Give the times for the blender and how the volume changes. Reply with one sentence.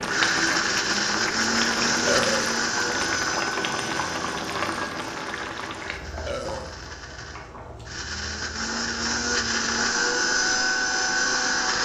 The blender can be heard from 0.0 to 11.8 s, getting quieter then louder.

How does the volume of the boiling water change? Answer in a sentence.
The loudness of the boiling water goes down.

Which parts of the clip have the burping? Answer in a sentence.
You can hear the burping from 2.0 to 2.5 s and from 6.2 to 6.8 s.